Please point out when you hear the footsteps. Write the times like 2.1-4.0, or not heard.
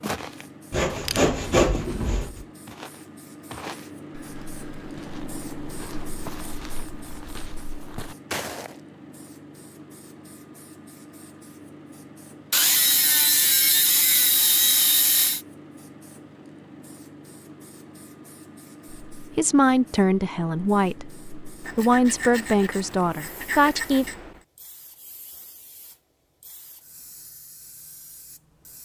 0.0-8.8.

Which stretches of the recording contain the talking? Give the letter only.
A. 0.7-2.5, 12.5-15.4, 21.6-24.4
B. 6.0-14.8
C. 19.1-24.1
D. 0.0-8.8
C.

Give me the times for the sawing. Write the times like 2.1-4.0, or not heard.
0.7-2.5, 12.5-15.4, 21.6-24.4.